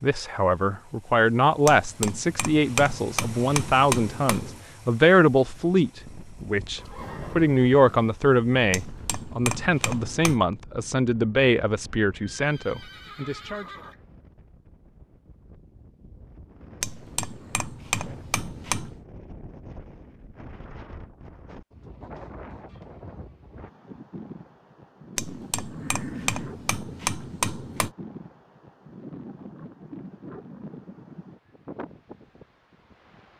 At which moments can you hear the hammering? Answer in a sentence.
You can hear the hammering from 1.6 to 4.6 s, from 8.7 to 10.4 s, from 16.8 to 19.0 s and from 25.1 to 27.9 s.